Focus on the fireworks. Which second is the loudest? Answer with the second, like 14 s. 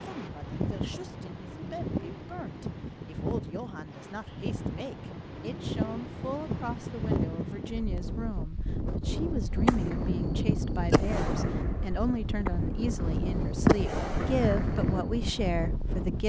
14 s.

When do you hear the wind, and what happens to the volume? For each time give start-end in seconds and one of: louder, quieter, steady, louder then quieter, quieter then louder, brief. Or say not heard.
0.0-16.2 steady.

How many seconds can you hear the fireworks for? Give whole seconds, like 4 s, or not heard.
6 s.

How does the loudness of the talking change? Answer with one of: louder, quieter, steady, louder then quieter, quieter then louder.
louder.